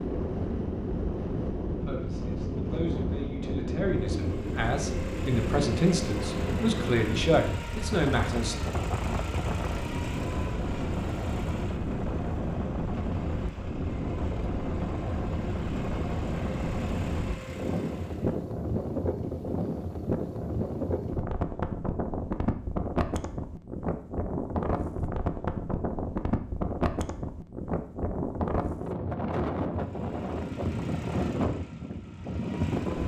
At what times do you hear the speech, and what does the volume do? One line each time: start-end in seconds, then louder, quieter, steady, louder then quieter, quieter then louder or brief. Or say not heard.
1.8-8.6 louder.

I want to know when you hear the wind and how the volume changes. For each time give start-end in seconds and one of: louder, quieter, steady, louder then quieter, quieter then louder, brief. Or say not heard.
0.0-33.0 steady.